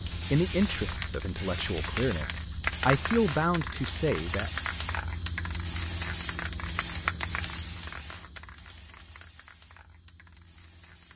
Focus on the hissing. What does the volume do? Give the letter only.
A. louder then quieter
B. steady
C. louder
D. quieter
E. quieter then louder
D.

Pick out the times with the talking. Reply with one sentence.
The talking can be heard from 0.0 to 4.5 s.